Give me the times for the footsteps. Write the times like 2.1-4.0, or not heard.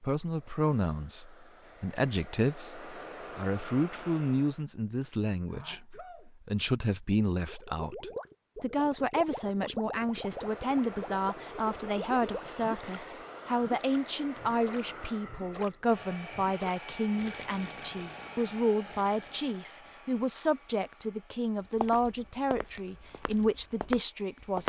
21.8-24.6.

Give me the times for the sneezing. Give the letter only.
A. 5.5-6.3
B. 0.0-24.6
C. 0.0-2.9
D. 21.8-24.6
A.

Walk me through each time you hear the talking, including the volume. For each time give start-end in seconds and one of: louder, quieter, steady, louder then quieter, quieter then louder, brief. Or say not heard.
0.0-24.6 steady.